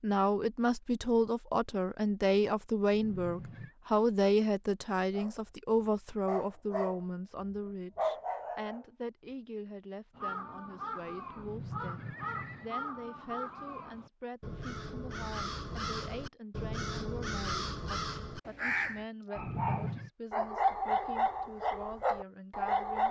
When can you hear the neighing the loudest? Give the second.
20 s.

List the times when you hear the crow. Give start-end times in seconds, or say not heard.
10.2-19.1.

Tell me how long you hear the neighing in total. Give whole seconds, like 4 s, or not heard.
3 s.